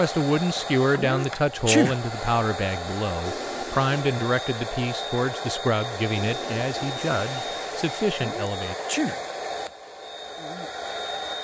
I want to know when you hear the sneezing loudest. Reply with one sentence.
The loudest moment of the sneezing is at 2 seconds.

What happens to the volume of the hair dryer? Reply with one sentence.
The loudness of the hair dryer stays about the same.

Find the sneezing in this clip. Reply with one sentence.
You can hear the sneezing from 0.9 to 2.0 s and from 8.2 to 9.2 s.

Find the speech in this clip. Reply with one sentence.
You can hear the speech from 0.0 to 8.8 s.